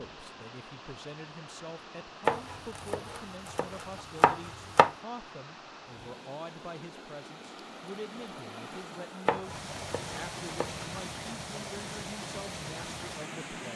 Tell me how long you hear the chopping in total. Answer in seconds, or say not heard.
4 s.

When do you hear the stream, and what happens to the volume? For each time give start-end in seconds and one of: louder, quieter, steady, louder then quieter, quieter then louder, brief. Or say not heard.
0.0-13.7 louder.